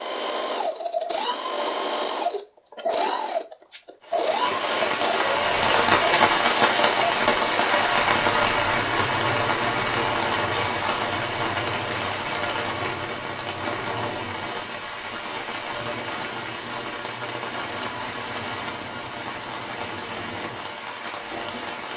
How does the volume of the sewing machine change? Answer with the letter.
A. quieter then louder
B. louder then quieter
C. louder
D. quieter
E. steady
D.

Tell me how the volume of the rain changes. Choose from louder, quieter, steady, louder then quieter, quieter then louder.
quieter.